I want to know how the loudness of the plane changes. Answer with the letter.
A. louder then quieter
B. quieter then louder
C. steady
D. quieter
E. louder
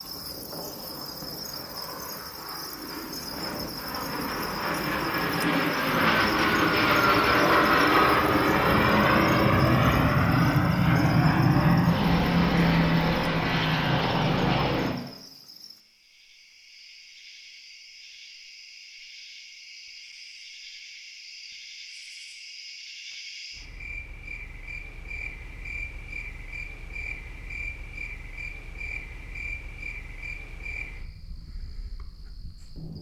E.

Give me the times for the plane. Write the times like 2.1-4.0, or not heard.
0.0-14.9.